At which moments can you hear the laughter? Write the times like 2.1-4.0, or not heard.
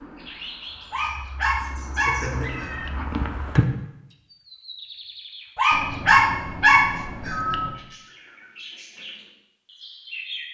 2.0-2.9.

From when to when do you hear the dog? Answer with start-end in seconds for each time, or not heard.
0.9-2.9, 5.5-7.5.